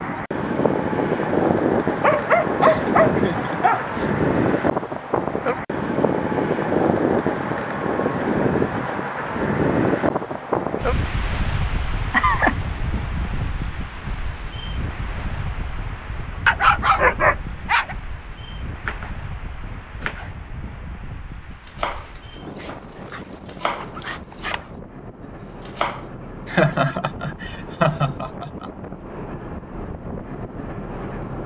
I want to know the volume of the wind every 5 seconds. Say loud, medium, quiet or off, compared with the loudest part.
loud, loud, medium, quiet, quiet, quiet, medium.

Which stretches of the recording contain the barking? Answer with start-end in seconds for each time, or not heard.
1.9-3.8, 16.4-17.9, 21.9-24.6.